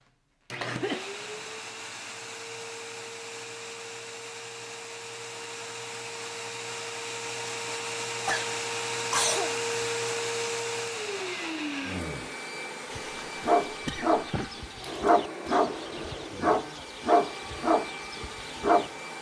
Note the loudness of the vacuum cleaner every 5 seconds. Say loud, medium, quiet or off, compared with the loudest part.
medium, loud, loud, medium.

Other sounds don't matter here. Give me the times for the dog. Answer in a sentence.
The dog can be heard from 13.4 to 19.1 s.